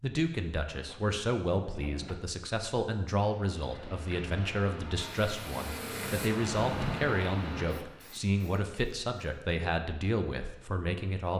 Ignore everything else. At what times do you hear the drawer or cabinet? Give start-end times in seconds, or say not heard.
0.7-2.1, 6.4-7.0.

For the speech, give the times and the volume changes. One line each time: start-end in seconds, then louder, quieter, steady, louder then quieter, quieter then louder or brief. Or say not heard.
0.0-11.3 steady.